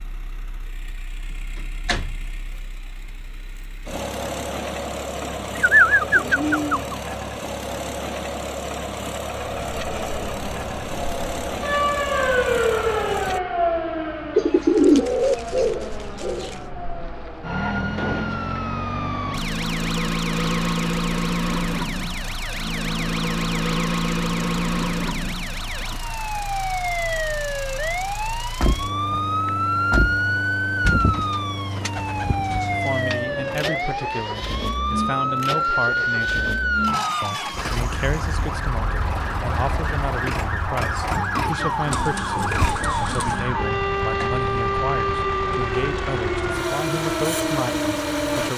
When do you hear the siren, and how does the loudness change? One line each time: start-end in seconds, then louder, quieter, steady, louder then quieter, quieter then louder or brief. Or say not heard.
9.5-48.5 steady.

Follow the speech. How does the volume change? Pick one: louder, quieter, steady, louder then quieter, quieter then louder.
steady.